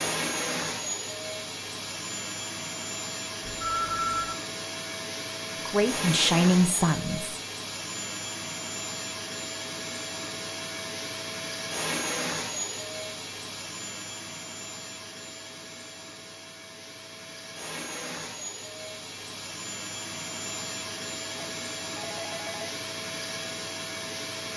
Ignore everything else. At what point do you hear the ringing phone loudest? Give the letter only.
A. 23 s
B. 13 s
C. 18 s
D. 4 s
D.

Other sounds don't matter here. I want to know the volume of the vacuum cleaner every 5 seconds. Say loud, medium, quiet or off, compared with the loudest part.
loud, loud, loud, medium, loud.